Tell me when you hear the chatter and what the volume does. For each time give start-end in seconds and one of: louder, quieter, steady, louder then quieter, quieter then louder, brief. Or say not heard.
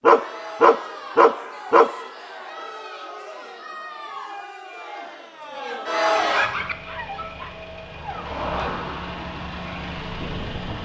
0.1-6.5 louder.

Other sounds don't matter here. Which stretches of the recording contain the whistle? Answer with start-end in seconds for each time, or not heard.
not heard.